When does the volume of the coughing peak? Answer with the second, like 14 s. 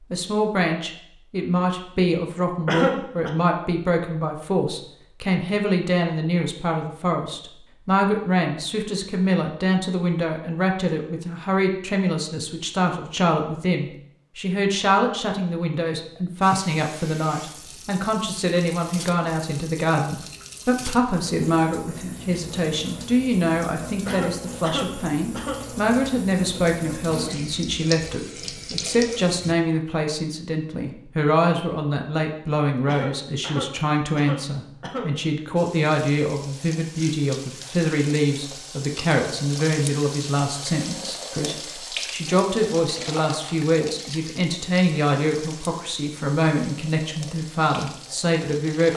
3 s.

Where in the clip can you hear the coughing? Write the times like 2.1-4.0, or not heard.
2.6-3.3, 24.1-25.6, 32.9-35.1.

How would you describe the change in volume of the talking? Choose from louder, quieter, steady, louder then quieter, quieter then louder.
steady.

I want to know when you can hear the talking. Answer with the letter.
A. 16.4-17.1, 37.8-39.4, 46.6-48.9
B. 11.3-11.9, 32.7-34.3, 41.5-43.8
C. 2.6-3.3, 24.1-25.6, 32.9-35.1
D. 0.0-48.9
D.